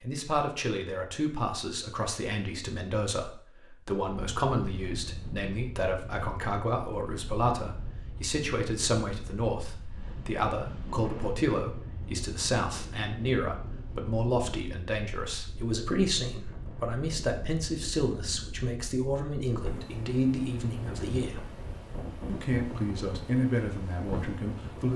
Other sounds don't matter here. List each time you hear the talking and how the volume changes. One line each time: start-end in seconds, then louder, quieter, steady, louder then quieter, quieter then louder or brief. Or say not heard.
0.0-21.5 steady
22.2-24.9 brief.